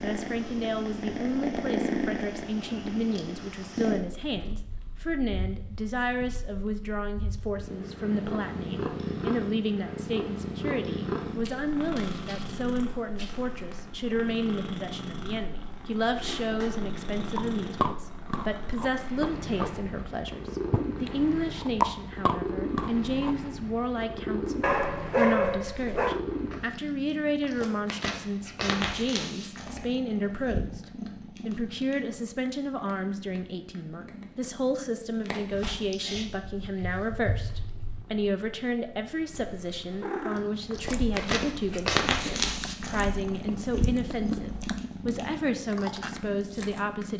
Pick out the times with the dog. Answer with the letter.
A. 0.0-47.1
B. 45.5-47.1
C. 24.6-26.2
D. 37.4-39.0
C.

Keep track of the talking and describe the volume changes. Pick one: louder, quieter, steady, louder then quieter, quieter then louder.
steady.